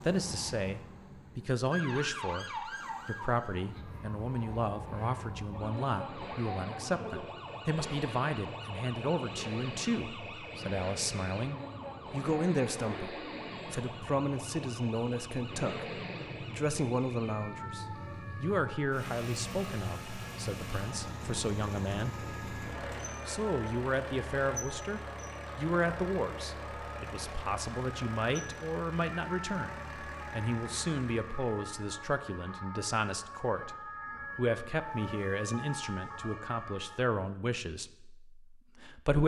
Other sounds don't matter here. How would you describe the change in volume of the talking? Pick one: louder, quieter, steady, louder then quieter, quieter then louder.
steady.